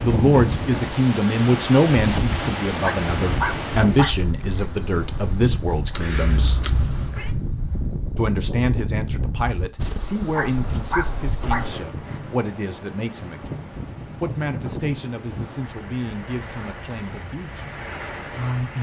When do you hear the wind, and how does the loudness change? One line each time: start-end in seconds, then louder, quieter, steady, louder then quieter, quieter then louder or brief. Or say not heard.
0.0-18.7 quieter.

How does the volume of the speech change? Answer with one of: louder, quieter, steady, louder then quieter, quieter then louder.
quieter.